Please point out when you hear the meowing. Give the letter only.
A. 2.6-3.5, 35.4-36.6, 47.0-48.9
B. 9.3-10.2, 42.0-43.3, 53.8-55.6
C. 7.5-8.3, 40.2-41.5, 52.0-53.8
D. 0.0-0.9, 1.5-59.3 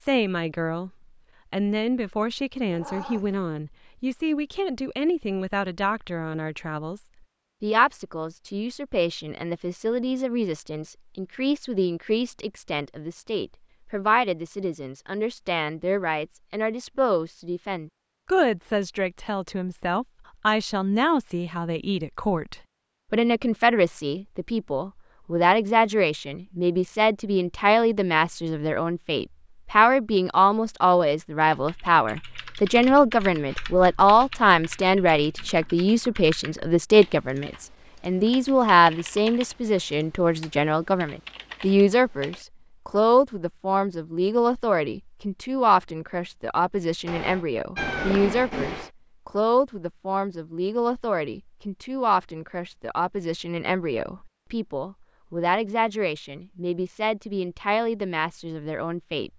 A.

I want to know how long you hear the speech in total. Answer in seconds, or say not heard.
59 s.